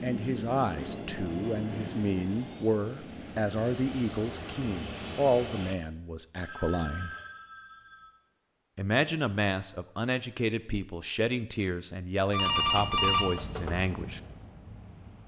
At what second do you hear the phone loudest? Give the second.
13 s.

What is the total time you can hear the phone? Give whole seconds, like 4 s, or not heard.
4 s.